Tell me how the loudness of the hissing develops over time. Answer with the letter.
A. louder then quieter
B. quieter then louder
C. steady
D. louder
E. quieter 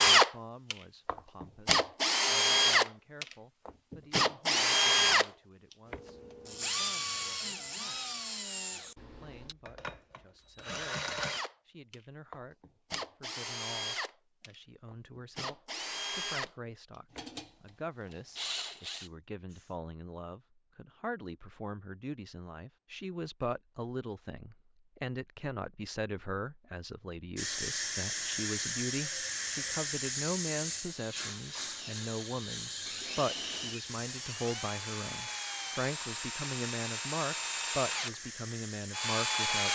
E.